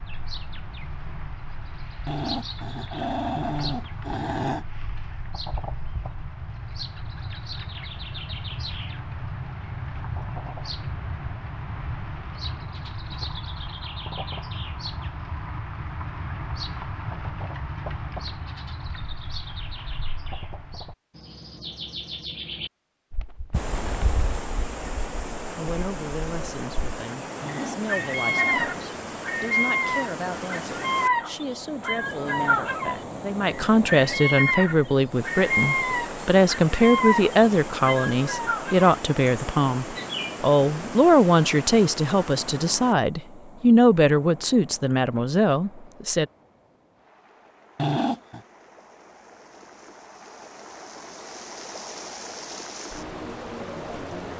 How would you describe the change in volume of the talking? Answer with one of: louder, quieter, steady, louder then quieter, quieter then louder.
louder.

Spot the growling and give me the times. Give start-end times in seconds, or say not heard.
2.0-4.7, 27.4-28.8, 47.8-48.4.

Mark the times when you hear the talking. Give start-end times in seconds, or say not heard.
25.4-46.2.